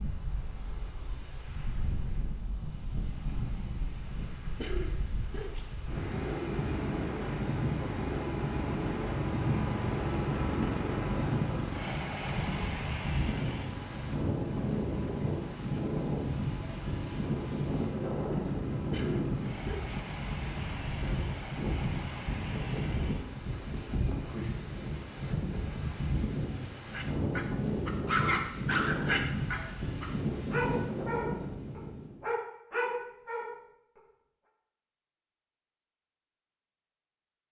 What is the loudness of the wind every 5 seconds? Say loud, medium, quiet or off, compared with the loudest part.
medium, loud, loud, loud, loud, loud, loud, off.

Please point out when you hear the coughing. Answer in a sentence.
The coughing can be heard from 4.5 to 5.7 s and from 18.9 to 19.9 s.